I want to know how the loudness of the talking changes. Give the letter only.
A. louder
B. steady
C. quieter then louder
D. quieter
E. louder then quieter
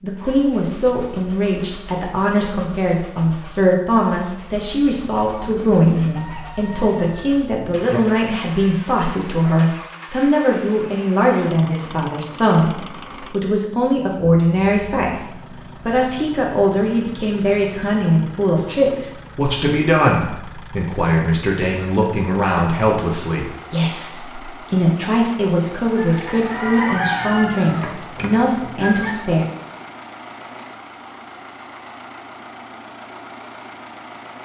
B.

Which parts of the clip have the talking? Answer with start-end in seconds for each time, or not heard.
0.0-29.4.